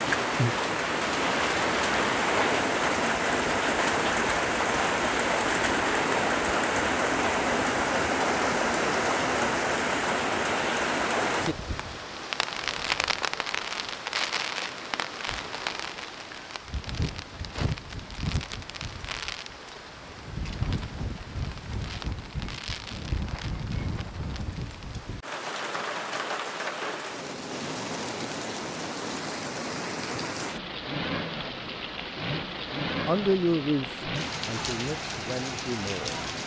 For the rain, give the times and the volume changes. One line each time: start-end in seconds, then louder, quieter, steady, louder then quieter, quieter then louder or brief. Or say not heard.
0.0-36.4 quieter.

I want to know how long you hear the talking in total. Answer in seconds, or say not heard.
3 s.